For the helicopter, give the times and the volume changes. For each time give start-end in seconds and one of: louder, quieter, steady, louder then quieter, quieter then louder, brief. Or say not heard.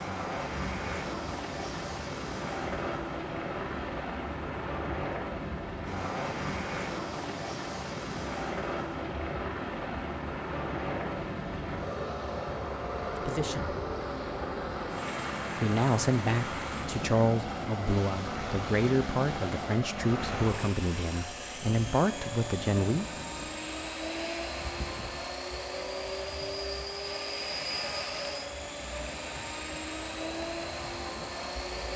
0.0-31.9 steady.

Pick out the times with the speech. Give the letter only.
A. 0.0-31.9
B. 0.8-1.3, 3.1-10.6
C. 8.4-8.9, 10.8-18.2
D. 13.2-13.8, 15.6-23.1
D.